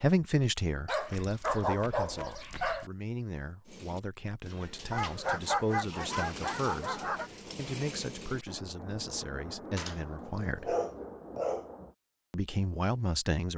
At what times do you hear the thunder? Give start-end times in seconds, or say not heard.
8.4-11.9.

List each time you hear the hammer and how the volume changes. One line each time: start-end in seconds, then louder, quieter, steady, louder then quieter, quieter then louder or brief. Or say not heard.
not heard.